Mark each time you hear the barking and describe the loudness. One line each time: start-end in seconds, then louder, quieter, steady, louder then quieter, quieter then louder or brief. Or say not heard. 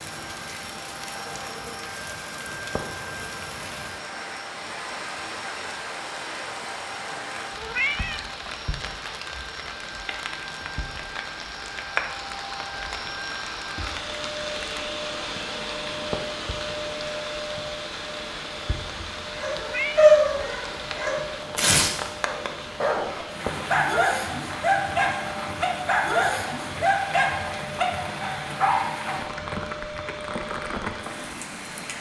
19.4-29.2 quieter.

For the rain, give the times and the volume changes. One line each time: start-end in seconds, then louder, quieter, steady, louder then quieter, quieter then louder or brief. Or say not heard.
0.0-31.9 steady.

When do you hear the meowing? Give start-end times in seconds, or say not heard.
7.5-8.3, 19.6-20.1.